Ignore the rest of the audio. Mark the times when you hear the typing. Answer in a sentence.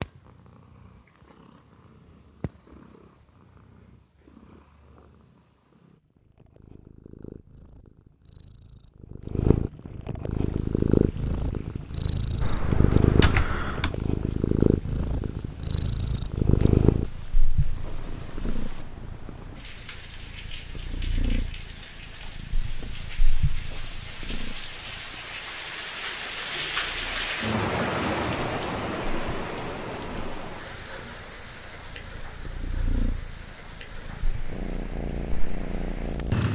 The typing can be heard from 12.4 to 13.9 s.